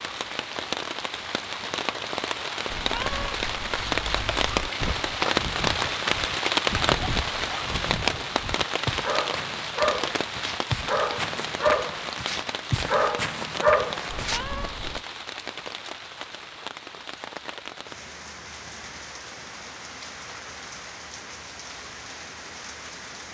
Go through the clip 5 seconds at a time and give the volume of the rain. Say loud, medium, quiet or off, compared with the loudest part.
loud, loud, medium, quiet, quiet.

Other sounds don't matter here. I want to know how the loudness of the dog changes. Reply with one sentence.
The volume of the dog goes up.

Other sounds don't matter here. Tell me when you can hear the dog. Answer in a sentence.
You can hear the dog from 4.8 to 14.4 s.